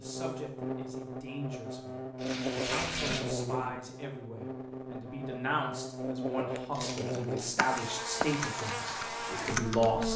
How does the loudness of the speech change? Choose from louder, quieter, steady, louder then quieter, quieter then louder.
louder.